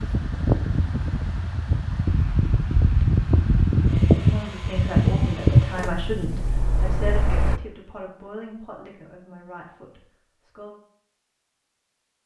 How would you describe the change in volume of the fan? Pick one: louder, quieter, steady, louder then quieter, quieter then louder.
louder then quieter.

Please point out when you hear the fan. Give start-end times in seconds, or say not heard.
0.0-7.6.